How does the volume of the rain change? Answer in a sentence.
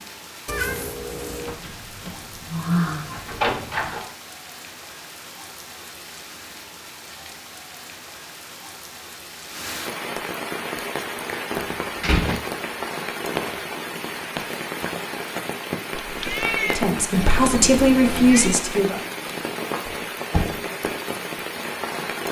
The loudness of the rain goes up.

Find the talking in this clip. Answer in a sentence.
The talking can be heard from 16.6 to 19.0 s.